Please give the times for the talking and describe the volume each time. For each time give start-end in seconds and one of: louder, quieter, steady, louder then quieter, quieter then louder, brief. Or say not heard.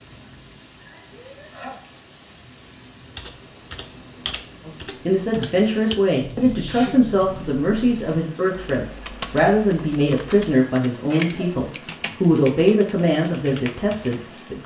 4.7-14.6 steady.